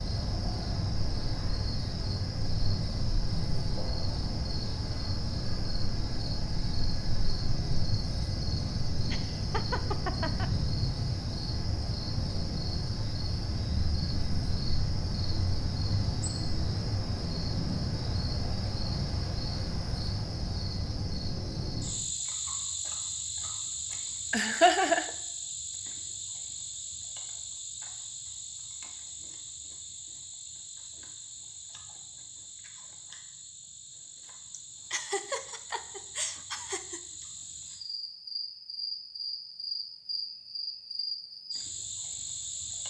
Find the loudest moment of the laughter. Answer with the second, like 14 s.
25 s.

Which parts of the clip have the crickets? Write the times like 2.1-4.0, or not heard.
0.0-42.8.